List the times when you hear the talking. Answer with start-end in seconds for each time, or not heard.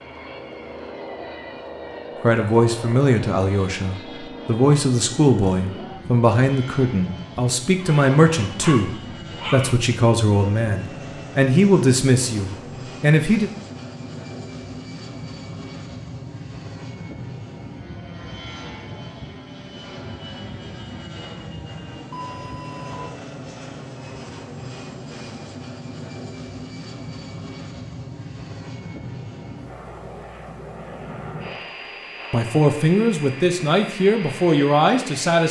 2.2-13.5, 32.3-35.4.